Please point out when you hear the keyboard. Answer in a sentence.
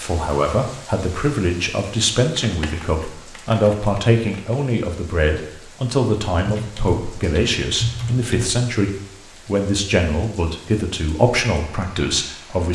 The keyboard can be heard from 2.4 to 4.5 s and from 6.5 to 8.4 s.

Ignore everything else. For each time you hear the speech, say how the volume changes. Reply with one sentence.
The speech can be heard from 0.0 to 12.6 s, at a steady volume.